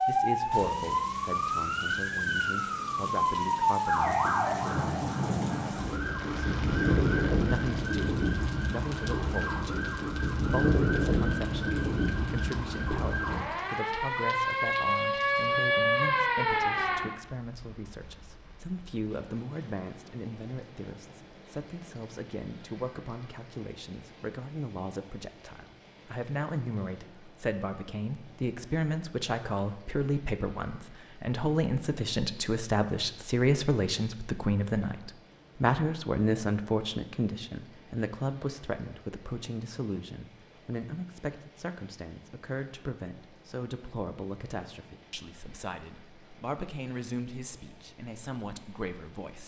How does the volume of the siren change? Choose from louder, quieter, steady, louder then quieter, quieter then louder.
steady.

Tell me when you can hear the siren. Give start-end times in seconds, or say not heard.
0.0-17.0.